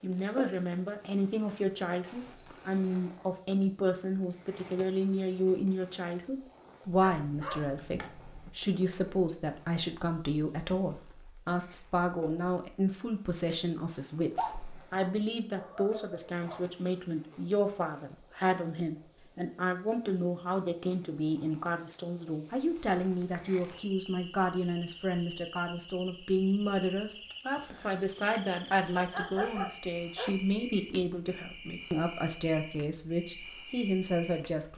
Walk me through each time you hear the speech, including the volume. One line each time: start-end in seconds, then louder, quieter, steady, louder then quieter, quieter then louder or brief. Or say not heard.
0.0-34.7 steady.